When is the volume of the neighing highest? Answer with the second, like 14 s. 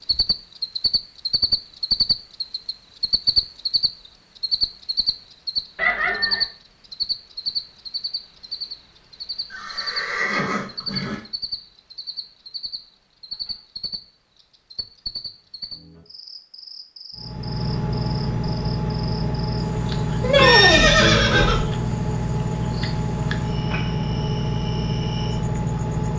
21 s.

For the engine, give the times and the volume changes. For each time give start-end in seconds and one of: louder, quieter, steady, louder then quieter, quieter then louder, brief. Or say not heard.
17.1-26.1 steady.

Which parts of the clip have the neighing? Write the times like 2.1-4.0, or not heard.
5.8-6.5, 9.5-11.2, 20.2-21.6.